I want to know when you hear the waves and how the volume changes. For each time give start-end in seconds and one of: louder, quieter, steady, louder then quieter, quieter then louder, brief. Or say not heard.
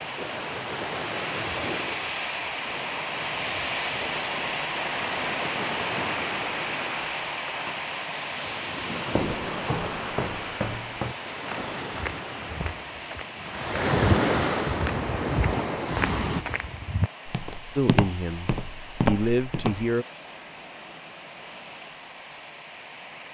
0.0-16.4 louder.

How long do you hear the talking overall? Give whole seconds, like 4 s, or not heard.
2 s.